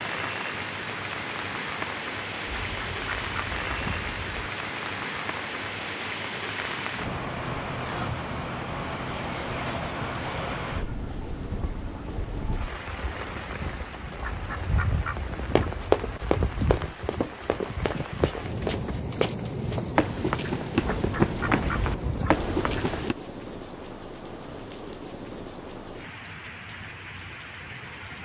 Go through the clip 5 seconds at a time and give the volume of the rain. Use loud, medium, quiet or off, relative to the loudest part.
loud, loud, loud, loud, loud, medium.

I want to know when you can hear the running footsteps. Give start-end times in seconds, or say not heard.
15.6-23.1.